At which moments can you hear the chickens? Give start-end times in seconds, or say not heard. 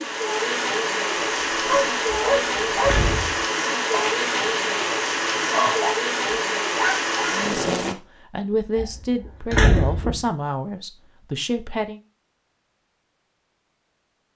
not heard.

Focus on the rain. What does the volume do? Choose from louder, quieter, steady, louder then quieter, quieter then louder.
steady.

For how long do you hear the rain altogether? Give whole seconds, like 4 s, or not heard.
8 s.